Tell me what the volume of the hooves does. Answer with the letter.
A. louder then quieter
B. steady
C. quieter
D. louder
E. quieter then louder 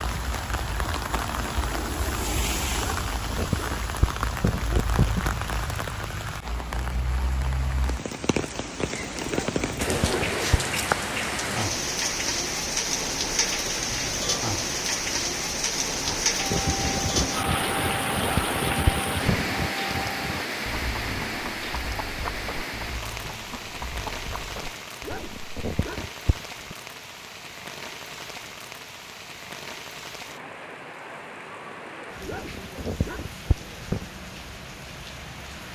C.